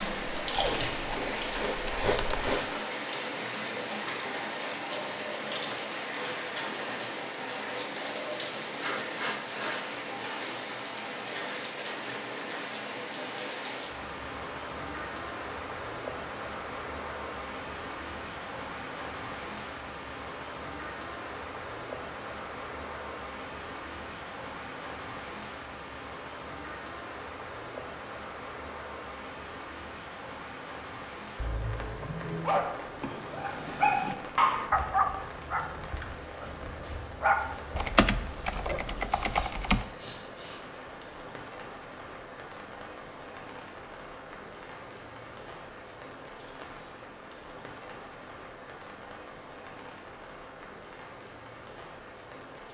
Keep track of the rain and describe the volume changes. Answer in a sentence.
The loudness of the rain goes down.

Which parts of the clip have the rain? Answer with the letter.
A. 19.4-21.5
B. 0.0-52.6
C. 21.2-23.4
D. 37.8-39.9
B.